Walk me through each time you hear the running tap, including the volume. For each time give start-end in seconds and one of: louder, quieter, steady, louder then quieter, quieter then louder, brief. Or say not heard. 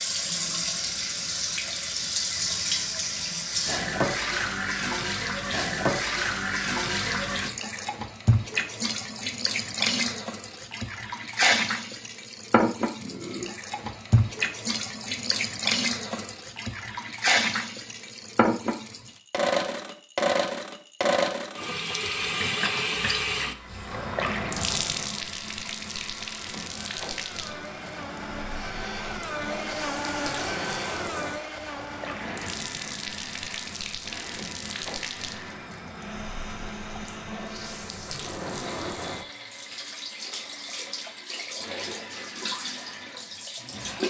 0.0-44.0 quieter.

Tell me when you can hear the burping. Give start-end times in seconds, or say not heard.
13.0-13.6, 38.5-39.0.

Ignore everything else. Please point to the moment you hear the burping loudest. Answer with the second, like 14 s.
13 s.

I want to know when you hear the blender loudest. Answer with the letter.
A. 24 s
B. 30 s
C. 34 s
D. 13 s
B.